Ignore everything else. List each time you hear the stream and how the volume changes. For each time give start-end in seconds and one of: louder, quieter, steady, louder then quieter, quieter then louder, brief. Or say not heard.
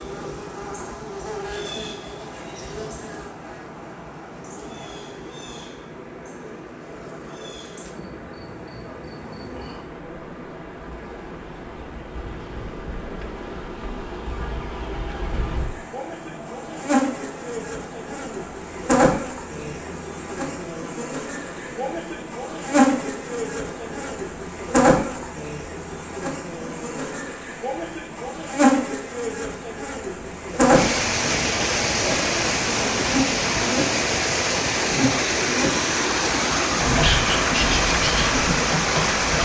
0.0-39.4 louder.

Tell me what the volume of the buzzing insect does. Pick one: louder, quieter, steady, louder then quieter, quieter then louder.
louder.